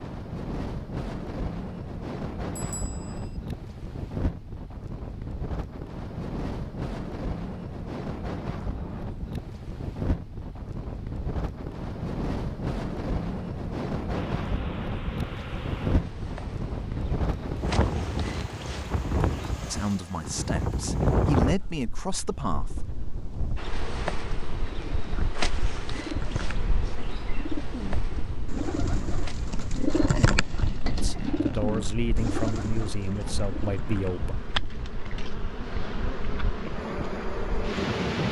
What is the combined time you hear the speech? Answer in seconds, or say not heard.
7 s.